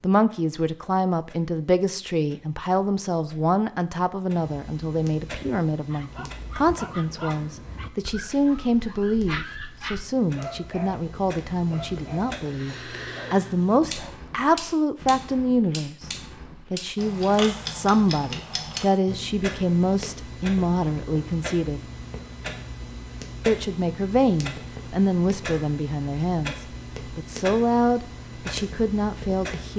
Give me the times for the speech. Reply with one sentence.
The speech can be heard from 0.0 to 16.1 s, from 16.7 to 21.8 s and from 23.4 to 29.7 s.